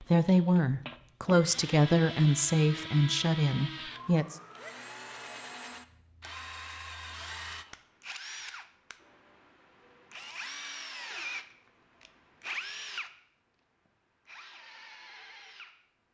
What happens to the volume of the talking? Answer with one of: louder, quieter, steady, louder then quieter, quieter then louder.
steady.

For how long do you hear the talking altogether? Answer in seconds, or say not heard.
4 s.